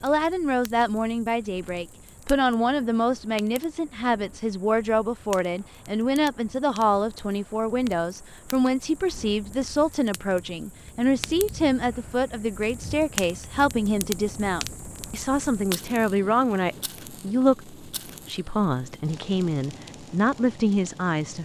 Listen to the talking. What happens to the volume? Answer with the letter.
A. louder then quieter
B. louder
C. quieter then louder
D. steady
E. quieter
D.